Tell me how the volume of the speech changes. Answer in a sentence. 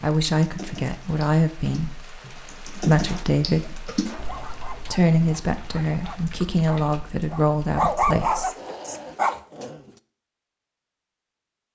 The loudness of the speech stays about the same.